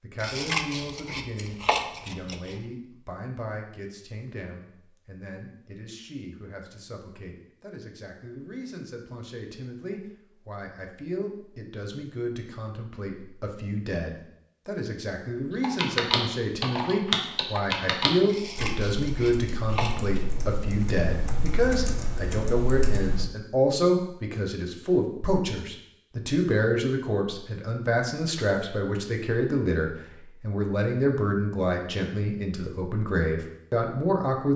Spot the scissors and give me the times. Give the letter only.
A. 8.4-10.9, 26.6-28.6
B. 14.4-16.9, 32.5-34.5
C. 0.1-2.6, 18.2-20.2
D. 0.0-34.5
C.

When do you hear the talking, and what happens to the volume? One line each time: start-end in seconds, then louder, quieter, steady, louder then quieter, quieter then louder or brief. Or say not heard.
0.0-34.5 louder.